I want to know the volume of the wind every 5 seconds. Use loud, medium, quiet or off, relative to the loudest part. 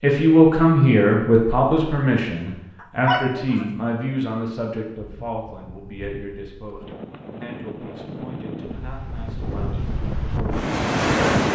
off, quiet, loud.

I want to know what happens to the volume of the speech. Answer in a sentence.
The volume of the speech goes down.